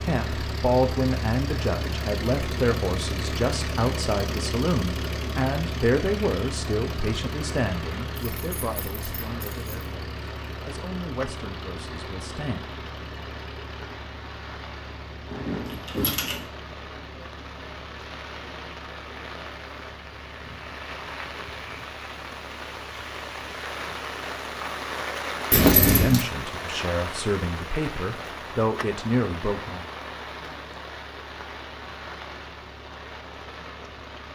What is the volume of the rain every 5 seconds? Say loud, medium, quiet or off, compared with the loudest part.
medium, medium, medium, medium, loud, loud, medium.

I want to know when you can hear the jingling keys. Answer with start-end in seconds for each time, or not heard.
8.2-9.7, 15.3-16.4, 25.5-26.2.